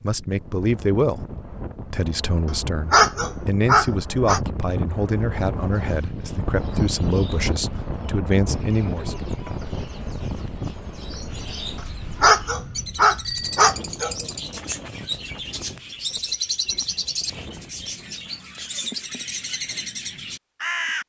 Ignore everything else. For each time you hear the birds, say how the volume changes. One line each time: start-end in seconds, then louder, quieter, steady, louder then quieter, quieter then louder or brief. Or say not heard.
5.7-21.0 louder.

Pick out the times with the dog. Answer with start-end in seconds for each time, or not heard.
2.9-4.4, 12.2-14.2.